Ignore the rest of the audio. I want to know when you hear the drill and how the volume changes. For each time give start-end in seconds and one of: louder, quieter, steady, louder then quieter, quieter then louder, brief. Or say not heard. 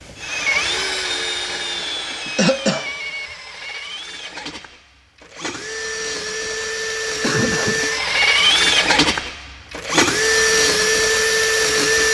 0.0-12.0 quieter then louder.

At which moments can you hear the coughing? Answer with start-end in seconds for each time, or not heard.
1.6-2.9, 7.2-7.8.